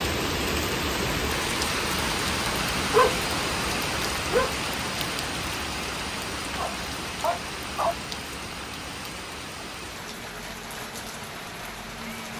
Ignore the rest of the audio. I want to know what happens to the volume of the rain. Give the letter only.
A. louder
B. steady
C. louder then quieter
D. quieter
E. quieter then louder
D.